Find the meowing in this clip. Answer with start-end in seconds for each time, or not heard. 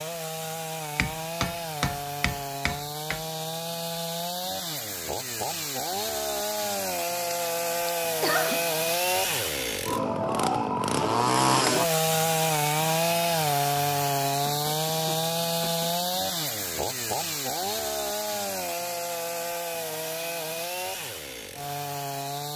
not heard.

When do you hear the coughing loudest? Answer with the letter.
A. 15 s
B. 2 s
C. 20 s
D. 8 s
D.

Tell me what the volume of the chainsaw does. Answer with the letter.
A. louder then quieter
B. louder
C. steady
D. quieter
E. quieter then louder
A.